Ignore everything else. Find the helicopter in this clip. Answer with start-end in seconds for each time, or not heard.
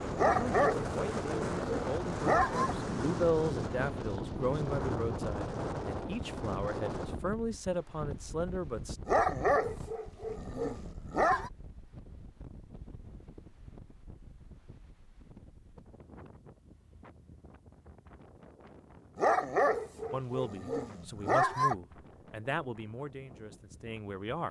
not heard.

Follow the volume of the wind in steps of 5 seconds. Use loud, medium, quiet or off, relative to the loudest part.
loud, medium, quiet, quiet, quiet.